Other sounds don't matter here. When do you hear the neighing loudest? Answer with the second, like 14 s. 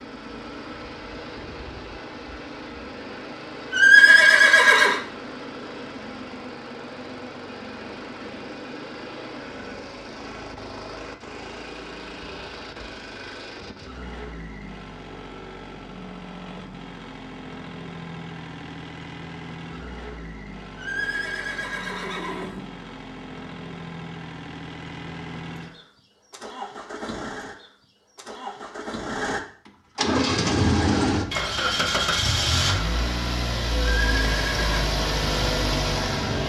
4 s.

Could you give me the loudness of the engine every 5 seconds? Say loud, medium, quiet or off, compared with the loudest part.
quiet, quiet, quiet, quiet, quiet, medium, loud, loud.